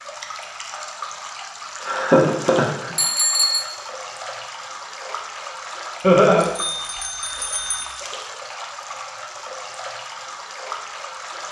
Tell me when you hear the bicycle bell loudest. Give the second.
3 s.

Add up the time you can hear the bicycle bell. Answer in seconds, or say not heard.
2 s.